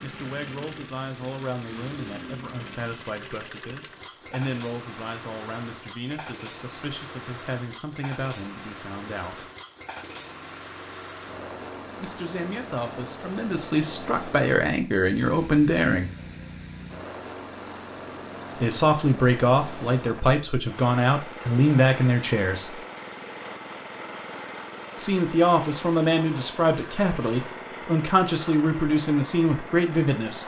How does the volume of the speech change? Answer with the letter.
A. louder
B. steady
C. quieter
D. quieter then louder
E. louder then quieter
A.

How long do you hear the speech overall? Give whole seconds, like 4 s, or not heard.
23 s.